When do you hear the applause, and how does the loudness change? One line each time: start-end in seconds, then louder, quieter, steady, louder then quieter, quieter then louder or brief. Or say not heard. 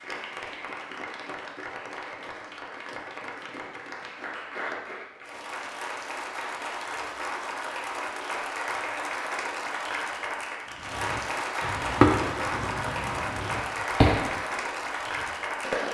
0.0-15.8 louder.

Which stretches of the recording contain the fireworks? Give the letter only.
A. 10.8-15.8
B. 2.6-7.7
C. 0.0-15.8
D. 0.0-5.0
A.